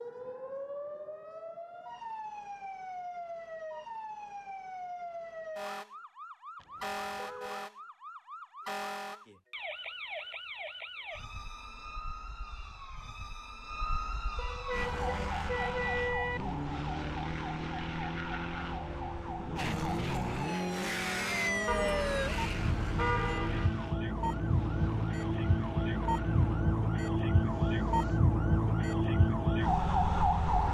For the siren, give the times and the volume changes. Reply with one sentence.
You can hear the siren from 0.0 to 30.6 s, getting louder.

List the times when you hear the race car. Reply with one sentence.
You can hear the race car from 14.7 to 28.2 s.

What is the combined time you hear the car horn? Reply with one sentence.
The car horn can be heard for 5 seconds in total.